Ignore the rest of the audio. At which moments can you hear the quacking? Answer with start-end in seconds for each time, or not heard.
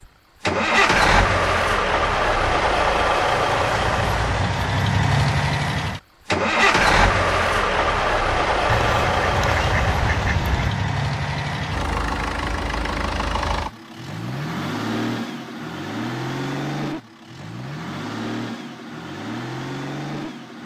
8.7-10.7.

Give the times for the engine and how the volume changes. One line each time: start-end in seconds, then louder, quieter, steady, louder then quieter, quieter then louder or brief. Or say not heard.
0.5-20.6 quieter.